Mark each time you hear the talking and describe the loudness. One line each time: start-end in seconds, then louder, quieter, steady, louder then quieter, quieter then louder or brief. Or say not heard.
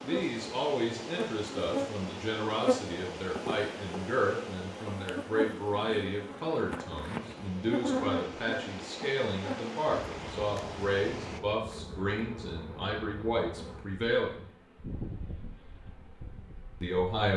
0.0-14.4 steady
16.8-17.3 brief.